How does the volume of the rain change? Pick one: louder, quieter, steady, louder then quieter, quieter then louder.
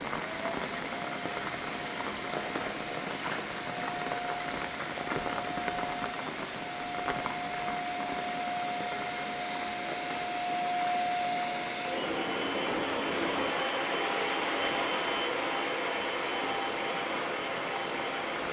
quieter.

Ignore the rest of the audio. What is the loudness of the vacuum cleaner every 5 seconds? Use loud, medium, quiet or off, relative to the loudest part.
medium, medium, loud, loud.